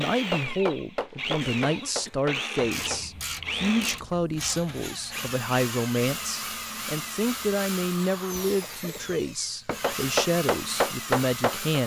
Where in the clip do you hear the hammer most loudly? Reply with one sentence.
The loudest moment of the hammer is at 11 seconds.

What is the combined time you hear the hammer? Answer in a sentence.
You can hear the hammer for 5 seconds altogether.